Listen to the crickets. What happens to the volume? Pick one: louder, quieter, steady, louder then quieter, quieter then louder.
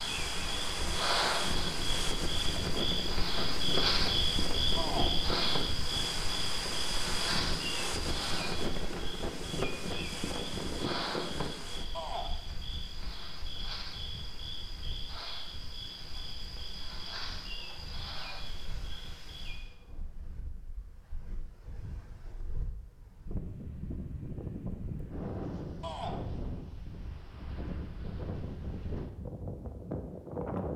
quieter.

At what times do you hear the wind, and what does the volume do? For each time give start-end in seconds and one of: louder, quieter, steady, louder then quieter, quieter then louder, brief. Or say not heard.
0.0-30.7 quieter then louder.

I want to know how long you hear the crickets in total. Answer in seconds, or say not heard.
20 s.